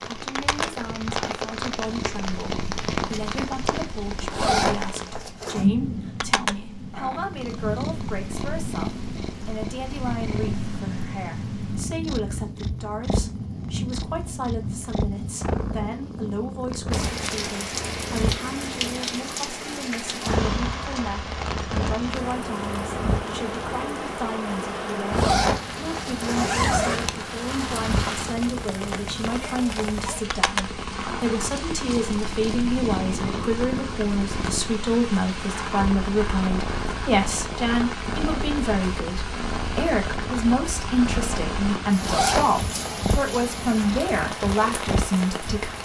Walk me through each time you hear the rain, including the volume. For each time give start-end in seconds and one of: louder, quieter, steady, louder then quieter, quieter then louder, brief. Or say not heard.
0.0-45.8 steady.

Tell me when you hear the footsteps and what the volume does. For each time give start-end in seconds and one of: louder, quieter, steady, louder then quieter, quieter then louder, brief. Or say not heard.
not heard.